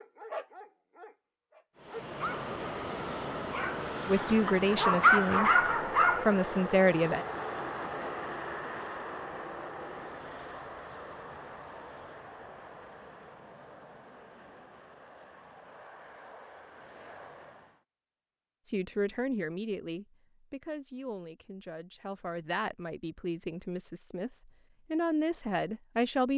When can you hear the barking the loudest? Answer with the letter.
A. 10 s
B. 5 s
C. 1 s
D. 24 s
B.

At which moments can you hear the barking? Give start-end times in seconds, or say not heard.
0.0-2.5, 3.5-6.3.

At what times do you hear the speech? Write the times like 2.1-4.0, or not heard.
4.0-7.2, 18.6-24.3, 24.9-26.3.